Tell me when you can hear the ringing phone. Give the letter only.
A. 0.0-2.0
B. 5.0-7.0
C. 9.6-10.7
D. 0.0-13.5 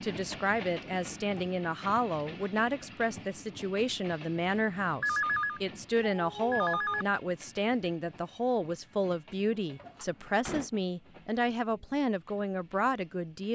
B.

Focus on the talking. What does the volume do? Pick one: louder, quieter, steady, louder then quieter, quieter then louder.
steady.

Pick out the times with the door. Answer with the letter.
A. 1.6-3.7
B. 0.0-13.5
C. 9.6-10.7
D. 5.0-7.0
C.